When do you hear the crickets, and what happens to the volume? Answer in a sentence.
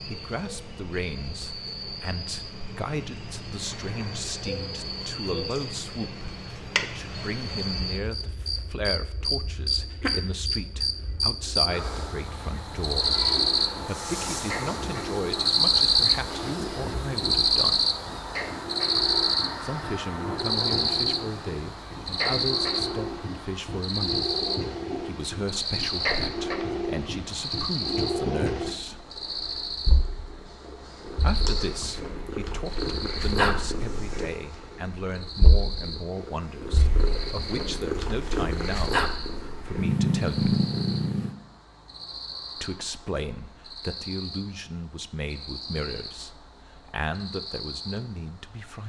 The crickets can be heard from 0.0 to 48.8 s, getting louder then quieter.